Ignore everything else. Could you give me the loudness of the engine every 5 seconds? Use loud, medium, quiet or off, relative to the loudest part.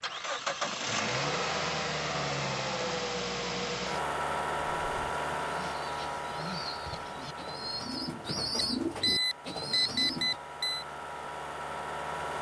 loud, medium, medium.